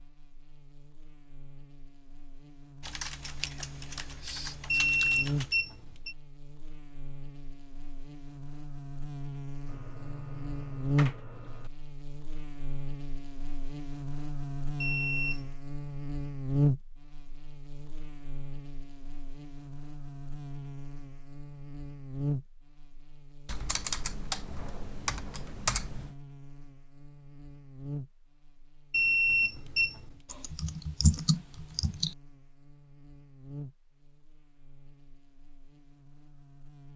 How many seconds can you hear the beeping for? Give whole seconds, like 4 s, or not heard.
3 s.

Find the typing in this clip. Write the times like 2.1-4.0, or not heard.
2.8-5.5, 9.7-11.7, 23.4-26.1, 30.2-32.1.